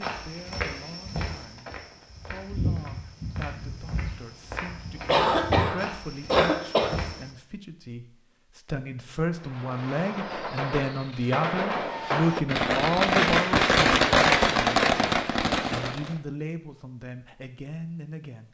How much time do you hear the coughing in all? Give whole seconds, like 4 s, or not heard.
2 s.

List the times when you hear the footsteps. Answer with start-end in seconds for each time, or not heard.
0.0-7.3.